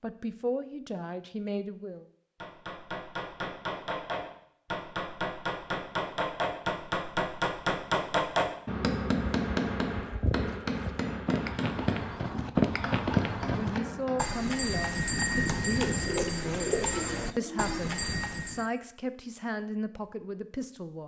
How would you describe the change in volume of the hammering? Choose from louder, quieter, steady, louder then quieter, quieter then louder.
louder then quieter.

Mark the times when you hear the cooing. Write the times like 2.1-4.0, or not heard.
15.9-17.8.